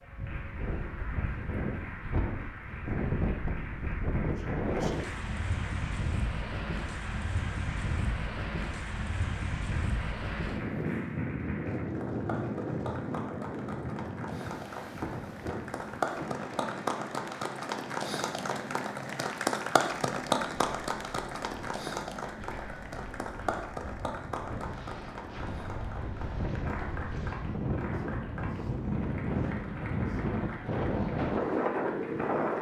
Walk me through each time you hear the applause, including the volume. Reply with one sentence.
You can hear the applause from 0.0 to 32.5 s, getting louder then quieter.